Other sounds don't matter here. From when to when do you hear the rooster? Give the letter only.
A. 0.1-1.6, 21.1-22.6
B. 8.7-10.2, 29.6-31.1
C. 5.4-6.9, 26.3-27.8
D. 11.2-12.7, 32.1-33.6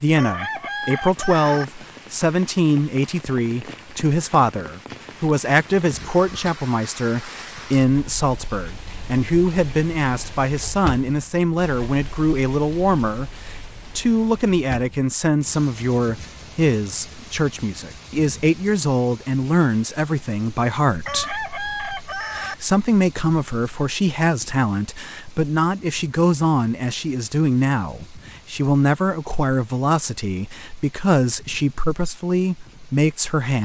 A.